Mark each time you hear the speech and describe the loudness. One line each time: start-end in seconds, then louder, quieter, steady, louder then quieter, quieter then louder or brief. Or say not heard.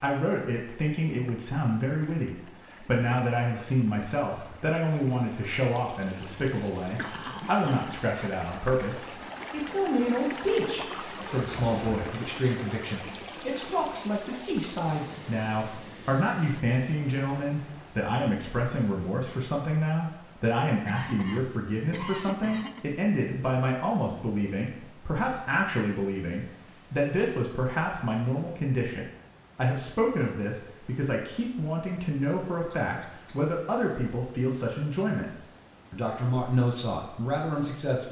0.0-38.0 steady.